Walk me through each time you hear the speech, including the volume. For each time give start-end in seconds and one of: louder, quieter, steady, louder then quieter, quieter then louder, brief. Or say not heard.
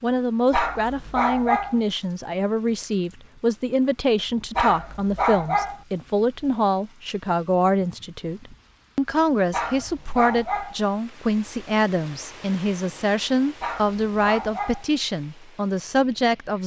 0.0-16.6 steady.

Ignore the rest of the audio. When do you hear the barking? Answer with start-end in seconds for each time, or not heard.
0.5-1.8, 4.5-5.8, 9.5-10.8, 13.6-14.8.